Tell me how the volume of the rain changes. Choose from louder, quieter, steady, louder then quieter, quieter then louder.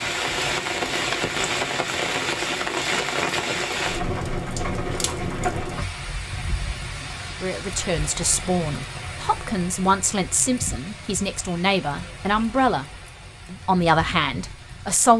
quieter.